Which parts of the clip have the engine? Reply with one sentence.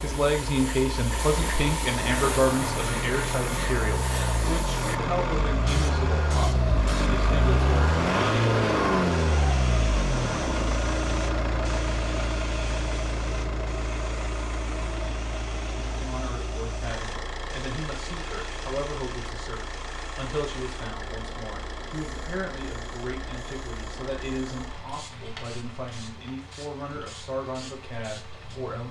The engine can be heard from 0.0 to 28.8 s.